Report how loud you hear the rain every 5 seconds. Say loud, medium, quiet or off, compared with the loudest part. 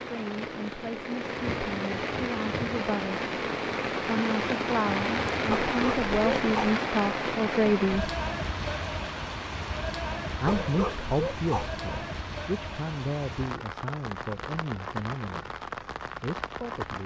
loud, loud, medium, medium.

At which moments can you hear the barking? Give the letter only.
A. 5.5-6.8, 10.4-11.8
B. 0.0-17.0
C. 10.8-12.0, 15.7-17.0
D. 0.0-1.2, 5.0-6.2
A.